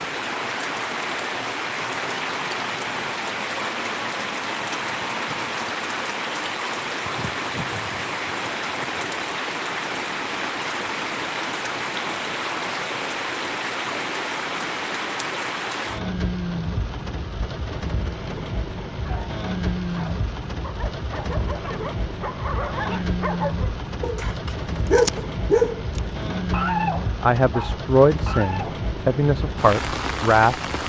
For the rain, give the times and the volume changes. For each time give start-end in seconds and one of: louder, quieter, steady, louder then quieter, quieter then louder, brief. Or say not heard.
0.0-30.8 steady.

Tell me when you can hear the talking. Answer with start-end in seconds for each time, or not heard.
27.2-30.6.